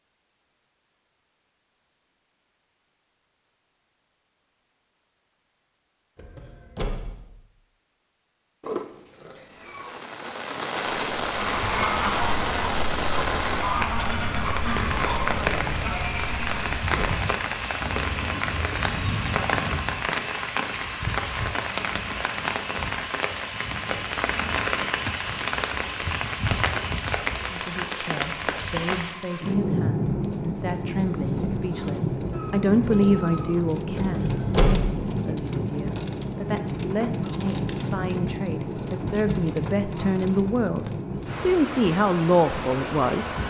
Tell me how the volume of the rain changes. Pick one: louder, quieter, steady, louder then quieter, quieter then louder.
steady.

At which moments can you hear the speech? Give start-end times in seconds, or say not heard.
27.5-43.4.